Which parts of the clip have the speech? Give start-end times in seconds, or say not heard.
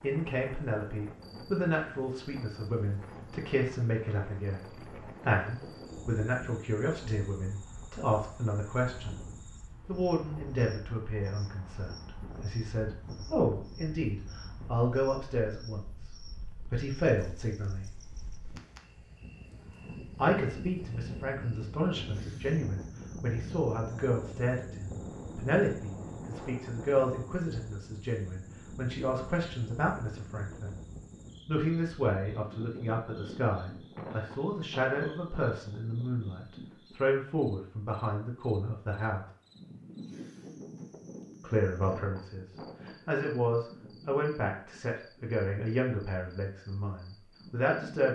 0.0-9.2, 9.8-17.9, 20.1-30.8, 31.4-39.2, 41.4-48.0.